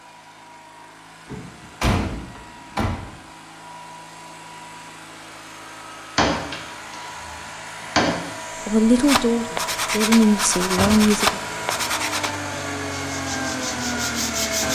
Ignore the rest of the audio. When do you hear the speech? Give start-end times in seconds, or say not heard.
8.7-11.4.